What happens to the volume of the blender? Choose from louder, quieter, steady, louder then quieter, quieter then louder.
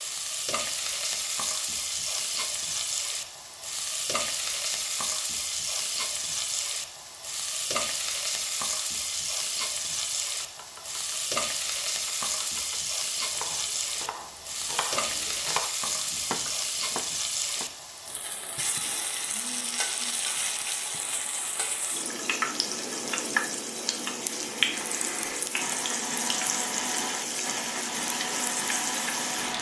steady.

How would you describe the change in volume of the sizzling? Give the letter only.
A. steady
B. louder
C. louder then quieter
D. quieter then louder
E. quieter
A.